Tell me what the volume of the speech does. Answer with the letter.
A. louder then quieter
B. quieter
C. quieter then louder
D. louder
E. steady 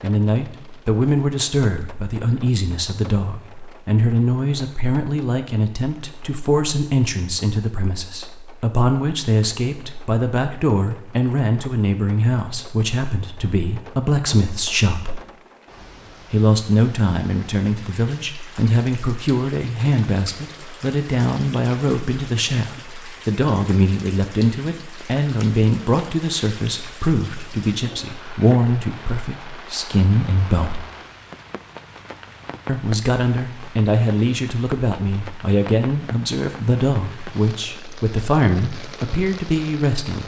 E.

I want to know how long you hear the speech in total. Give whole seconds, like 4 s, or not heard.
37 s.